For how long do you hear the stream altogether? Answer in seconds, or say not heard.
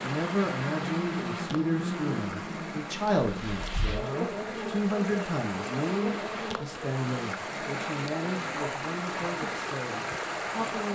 11 s.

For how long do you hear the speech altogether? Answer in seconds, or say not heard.
11 s.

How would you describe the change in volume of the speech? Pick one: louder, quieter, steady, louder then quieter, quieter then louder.
quieter.